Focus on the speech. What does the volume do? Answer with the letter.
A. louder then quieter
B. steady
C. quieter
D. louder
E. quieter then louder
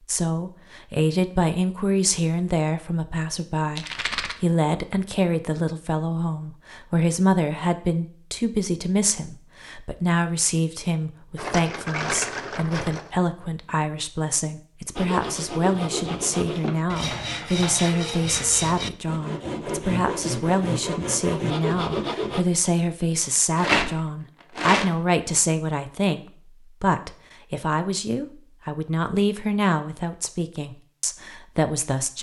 B.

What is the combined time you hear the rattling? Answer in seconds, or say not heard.
4 s.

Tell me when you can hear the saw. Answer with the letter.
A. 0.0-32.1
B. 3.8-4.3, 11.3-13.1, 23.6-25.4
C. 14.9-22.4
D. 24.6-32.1
C.